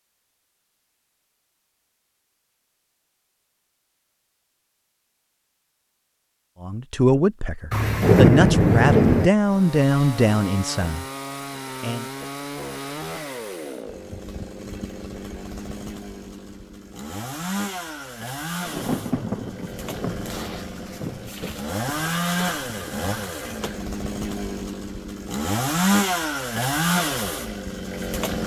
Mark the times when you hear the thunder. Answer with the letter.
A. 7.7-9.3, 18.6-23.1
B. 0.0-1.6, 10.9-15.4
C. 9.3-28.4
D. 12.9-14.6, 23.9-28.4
A.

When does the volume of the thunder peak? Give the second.
8 s.